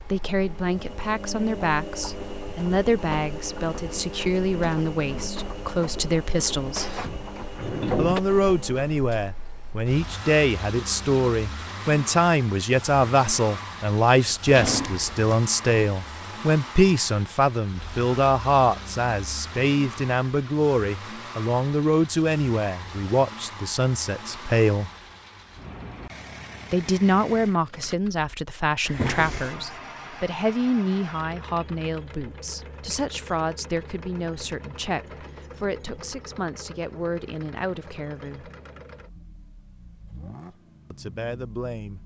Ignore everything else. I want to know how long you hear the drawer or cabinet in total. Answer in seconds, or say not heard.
3 s.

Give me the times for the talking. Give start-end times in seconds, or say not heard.
0.0-7.0, 8.0-24.9, 26.7-38.5, 40.9-42.0.